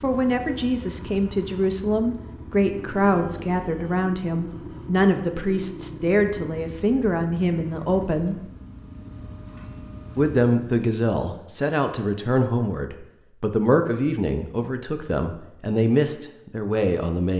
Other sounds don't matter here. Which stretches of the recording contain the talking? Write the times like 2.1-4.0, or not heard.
0.0-8.4, 10.2-17.3.